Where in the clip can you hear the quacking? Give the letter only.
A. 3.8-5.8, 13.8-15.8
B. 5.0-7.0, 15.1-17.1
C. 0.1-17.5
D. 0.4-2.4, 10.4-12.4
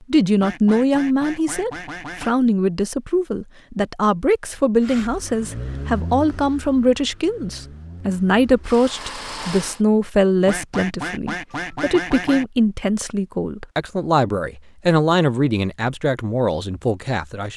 D.